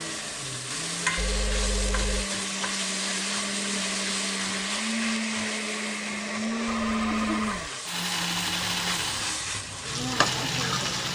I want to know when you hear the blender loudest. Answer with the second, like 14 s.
7 s.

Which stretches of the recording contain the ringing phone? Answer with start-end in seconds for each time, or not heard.
1.1-2.3, 6.7-7.7.